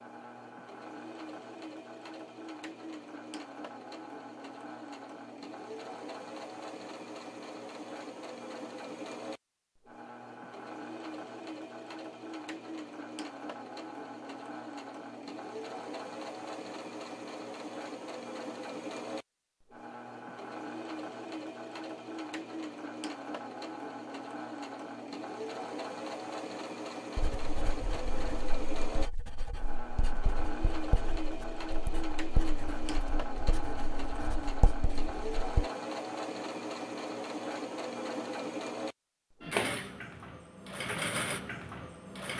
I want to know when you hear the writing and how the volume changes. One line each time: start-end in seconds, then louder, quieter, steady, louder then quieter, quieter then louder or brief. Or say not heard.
27.1-35.7 louder.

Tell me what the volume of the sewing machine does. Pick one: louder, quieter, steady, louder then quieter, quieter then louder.
louder.